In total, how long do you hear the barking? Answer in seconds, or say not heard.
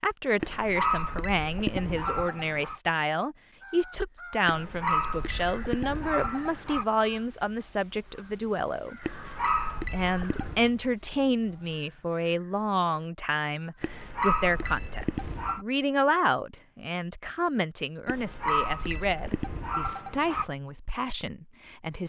11 s.